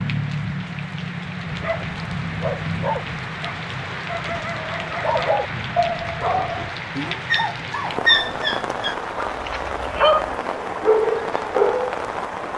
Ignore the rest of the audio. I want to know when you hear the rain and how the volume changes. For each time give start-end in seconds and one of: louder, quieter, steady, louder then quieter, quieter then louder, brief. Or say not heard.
0.0-12.5 steady.